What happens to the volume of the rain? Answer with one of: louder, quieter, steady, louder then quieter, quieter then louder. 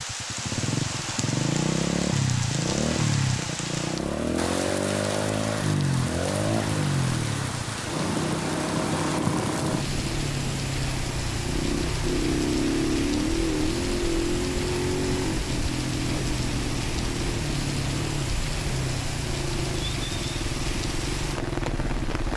steady.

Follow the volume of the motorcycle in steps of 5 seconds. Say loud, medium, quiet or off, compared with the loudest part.
loud, loud, loud, loud, medium.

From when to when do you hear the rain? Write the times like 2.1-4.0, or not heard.
0.0-22.3.